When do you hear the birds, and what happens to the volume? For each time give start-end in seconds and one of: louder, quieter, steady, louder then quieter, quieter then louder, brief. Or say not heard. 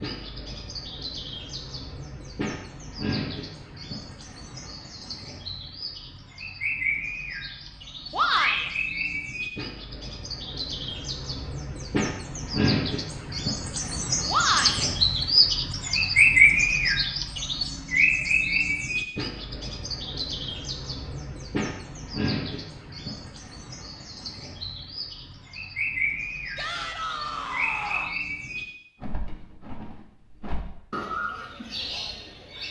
0.0-32.6 louder then quieter.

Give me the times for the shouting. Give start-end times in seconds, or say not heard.
8.1-8.7, 14.2-14.8, 26.6-28.2.